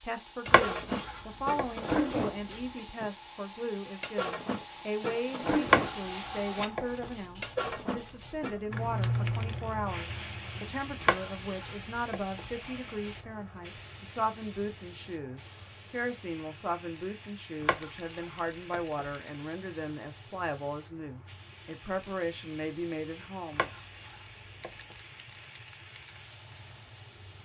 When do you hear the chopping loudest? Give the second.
6 s.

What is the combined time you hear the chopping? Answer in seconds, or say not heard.
8 s.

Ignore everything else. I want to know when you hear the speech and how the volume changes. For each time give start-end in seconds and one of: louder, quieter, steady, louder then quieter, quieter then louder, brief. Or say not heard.
0.0-23.7 steady.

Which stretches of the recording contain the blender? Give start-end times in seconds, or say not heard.
not heard.